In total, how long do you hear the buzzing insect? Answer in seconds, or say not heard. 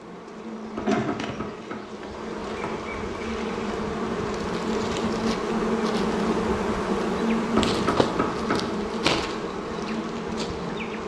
11 s.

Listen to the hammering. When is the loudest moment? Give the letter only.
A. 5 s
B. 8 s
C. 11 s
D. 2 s
B.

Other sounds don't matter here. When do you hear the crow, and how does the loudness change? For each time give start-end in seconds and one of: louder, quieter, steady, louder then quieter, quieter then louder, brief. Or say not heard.
not heard.